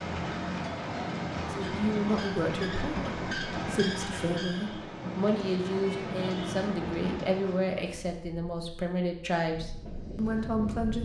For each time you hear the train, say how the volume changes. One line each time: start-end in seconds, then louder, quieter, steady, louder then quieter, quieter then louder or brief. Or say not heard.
0.0-10.9 quieter.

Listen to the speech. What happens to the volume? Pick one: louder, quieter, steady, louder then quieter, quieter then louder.
steady.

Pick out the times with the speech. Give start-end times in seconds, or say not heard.
1.5-10.9.